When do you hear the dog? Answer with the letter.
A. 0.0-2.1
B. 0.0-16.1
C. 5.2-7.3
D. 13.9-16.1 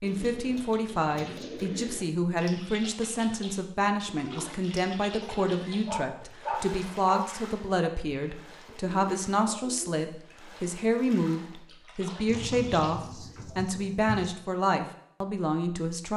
C.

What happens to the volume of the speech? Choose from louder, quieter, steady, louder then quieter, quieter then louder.
steady.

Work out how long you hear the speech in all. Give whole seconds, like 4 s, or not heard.
16 s.